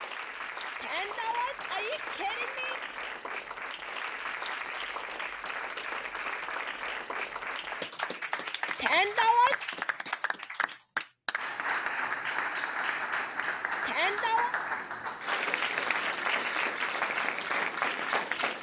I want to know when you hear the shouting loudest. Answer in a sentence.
The loudest moment of the shouting is at 9 seconds.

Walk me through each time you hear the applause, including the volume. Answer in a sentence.
The applause can be heard from 0.0 to 18.5 s, getting louder.